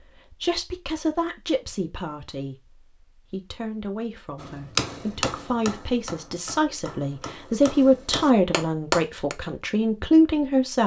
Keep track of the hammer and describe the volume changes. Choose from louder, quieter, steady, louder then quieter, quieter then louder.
quieter then louder.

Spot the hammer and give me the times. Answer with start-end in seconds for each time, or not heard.
4.4-9.3.